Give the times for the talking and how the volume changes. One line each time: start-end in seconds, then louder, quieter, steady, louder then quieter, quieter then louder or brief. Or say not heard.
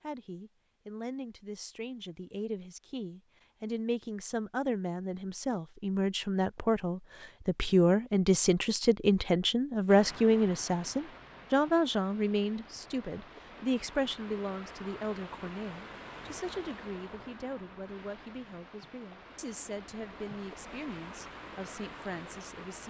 0.0-22.8 louder then quieter.